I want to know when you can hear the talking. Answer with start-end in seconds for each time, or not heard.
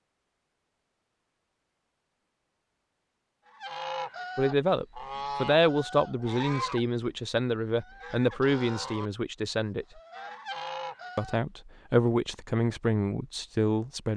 4.3-9.8, 11.2-14.1.